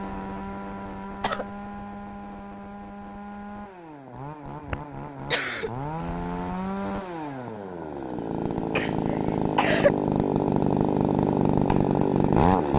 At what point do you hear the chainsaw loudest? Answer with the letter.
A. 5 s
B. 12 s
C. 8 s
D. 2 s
B.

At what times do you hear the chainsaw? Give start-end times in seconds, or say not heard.
0.0-12.7.